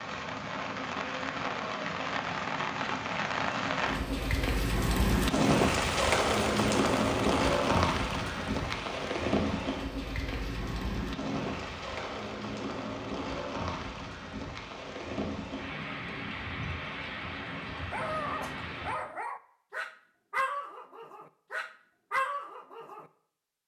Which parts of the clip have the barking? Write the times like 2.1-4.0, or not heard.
17.9-23.1.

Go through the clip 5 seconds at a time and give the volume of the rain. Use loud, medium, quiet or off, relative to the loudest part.
medium, loud, medium, medium, off.